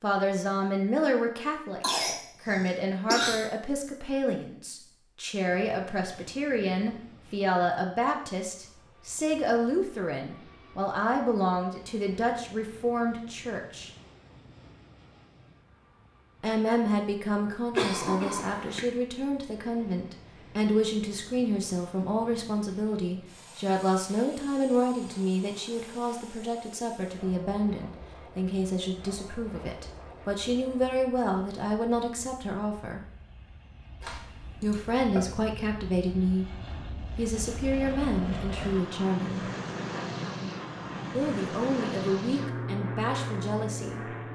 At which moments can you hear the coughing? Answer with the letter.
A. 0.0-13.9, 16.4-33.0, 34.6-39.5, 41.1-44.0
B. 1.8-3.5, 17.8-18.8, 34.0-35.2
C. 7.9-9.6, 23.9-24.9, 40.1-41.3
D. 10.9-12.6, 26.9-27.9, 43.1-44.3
B.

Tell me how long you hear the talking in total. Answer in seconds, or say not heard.
38 s.